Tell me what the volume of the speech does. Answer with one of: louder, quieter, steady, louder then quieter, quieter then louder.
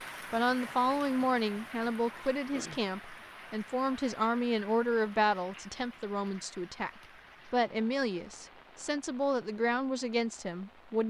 steady.